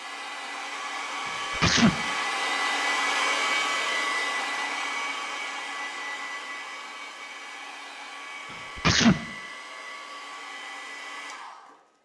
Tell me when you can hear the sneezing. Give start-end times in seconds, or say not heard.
1.2-1.9, 8.5-9.2.